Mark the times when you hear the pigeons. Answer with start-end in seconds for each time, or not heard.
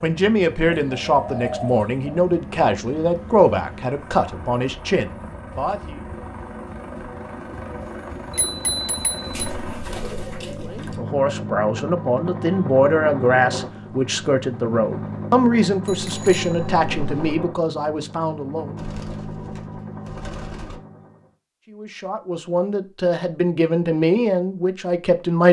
0.8-2.0, 9.3-11.0, 18.8-20.8.